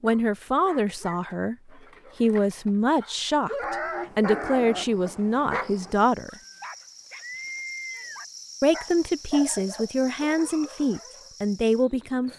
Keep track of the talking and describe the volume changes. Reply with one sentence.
The volume of the talking stays about the same.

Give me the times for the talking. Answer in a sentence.
The talking can be heard from 0.0 to 6.3 s and from 8.6 to 12.3 s.